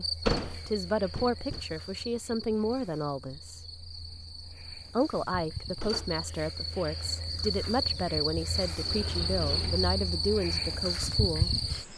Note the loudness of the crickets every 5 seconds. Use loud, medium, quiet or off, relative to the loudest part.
medium, loud, loud.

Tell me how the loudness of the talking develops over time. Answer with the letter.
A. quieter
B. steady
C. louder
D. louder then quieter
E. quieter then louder
B.